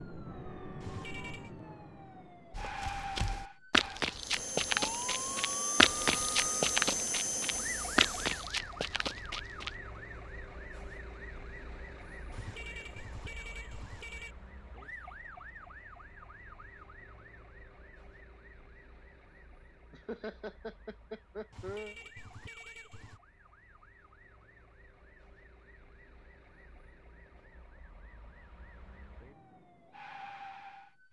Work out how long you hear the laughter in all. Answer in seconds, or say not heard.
2 s.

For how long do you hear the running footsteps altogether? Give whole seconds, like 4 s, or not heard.
7 s.